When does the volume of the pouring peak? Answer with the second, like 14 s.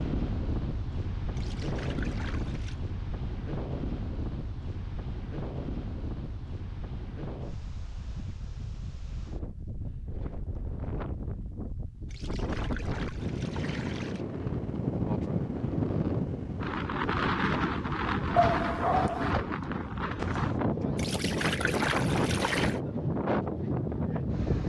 22 s.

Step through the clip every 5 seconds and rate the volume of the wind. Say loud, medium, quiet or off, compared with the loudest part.
medium, medium, medium, loud, loud.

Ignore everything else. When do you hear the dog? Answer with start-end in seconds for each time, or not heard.
18.4-19.4.